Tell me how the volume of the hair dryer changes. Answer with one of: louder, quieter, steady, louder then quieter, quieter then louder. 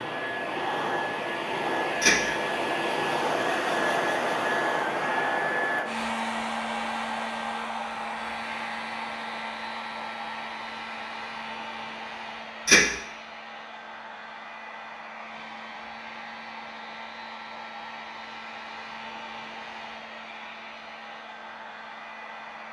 quieter.